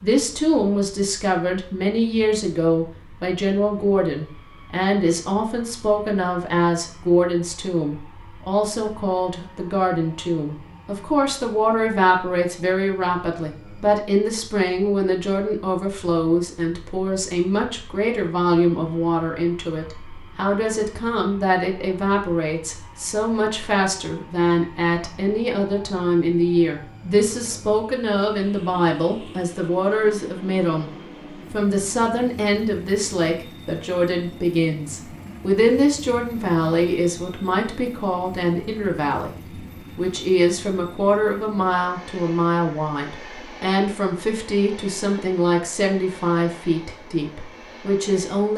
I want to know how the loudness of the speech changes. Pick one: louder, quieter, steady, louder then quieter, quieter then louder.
steady.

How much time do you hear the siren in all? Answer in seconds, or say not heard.
not heard.